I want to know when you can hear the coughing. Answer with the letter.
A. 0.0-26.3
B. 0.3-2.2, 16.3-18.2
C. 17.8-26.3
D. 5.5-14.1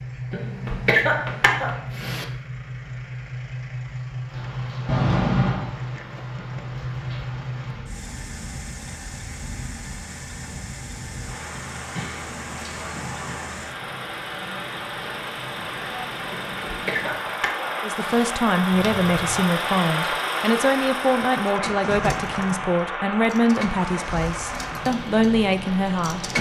B.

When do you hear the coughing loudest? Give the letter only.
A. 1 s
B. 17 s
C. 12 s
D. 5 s
A.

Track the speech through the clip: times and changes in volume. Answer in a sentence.
You can hear the speech from 17.8 to 26.3 s, at a steady volume.